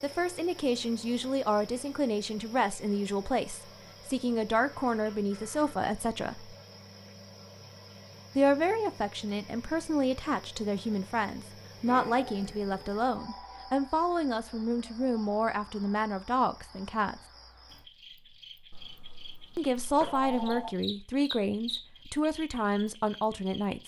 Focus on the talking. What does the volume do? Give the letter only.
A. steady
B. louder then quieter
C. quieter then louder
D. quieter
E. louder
A.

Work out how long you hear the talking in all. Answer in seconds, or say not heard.
20 s.